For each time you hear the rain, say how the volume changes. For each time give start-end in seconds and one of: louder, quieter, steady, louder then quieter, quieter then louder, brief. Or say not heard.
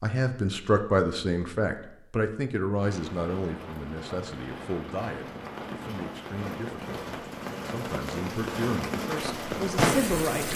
2.8-10.5 louder.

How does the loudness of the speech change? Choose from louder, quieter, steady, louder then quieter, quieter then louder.
quieter then louder.